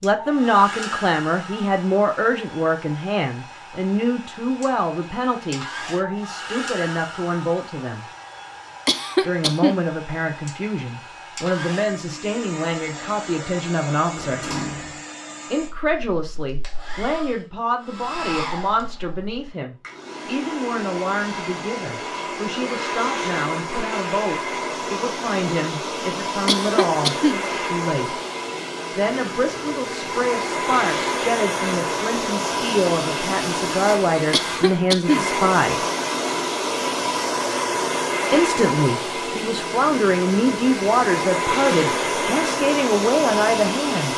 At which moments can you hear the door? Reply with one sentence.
The door can be heard from 14.2 to 15.0 s.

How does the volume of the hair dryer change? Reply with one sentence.
The volume of the hair dryer goes up.